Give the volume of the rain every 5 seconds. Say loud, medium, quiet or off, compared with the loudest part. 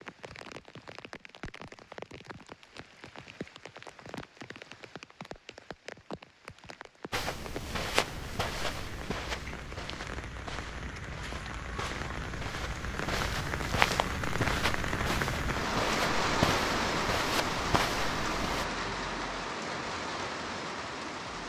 quiet, quiet, medium, loud, medium.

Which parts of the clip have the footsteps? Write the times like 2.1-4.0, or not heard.
7.1-18.6.